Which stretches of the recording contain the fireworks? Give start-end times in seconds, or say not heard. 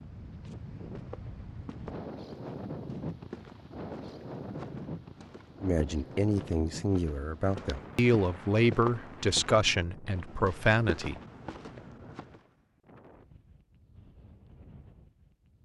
not heard.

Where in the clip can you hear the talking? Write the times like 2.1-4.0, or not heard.
5.6-11.2.